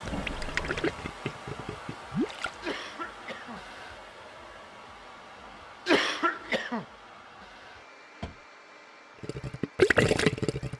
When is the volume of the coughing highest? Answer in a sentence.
The volume of the coughing peaks at 6 seconds.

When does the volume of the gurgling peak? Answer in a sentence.
The loudest moment of the gurgling is at 10 seconds.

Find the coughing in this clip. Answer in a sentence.
You can hear the coughing from 2.6 to 3.6 s and from 5.8 to 6.8 s.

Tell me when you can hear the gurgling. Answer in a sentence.
The gurgling can be heard from 0.0 to 2.5 s and from 9.2 to 10.7 s.